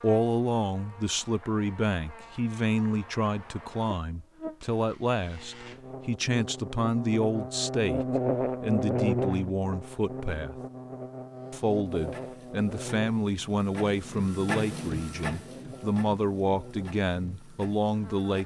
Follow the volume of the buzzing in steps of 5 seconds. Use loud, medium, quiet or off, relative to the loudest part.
quiet, loud, medium, quiet.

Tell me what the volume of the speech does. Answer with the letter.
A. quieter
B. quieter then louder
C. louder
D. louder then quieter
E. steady
E.